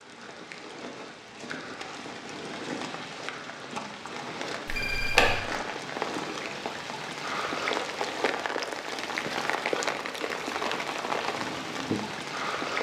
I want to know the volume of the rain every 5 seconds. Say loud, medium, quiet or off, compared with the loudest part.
medium, loud, loud.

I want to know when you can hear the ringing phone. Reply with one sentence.
The ringing phone can be heard from 4.7 to 5.4 s.